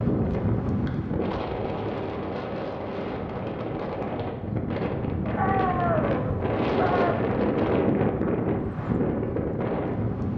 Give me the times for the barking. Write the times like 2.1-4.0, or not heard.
5.3-7.3.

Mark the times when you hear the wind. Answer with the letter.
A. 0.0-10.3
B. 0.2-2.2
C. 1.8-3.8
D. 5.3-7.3
A.